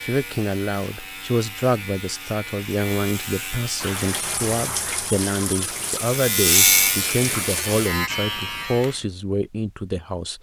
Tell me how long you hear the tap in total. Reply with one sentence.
You can hear the tap for 4 seconds altogether.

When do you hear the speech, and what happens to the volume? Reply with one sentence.
You can hear the speech from 0.0 to 10.3 s, at a steady volume.